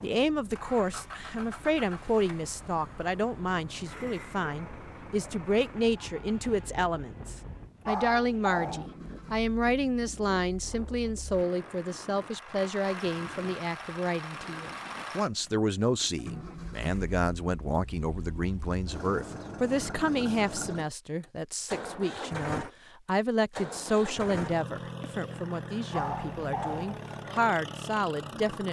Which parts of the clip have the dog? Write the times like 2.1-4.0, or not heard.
7.8-8.9, 25.9-26.9.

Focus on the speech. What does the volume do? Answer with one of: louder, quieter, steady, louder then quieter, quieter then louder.
steady.